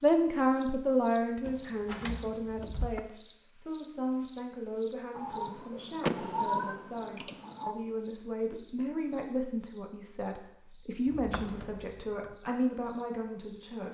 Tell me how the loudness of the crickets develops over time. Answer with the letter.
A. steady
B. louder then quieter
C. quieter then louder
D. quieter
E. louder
D.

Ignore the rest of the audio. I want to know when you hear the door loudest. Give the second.
6 s.